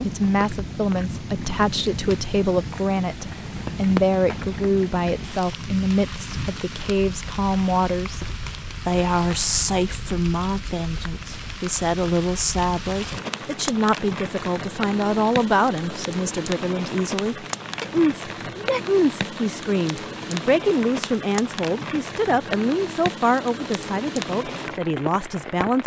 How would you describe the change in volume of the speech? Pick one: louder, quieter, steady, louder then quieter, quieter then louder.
steady.